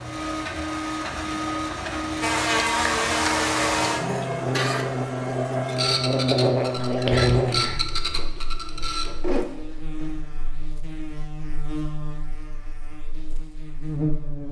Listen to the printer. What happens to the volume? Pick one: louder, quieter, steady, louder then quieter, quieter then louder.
steady.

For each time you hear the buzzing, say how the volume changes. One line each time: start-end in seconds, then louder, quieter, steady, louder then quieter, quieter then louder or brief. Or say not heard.
2.2-14.4 quieter.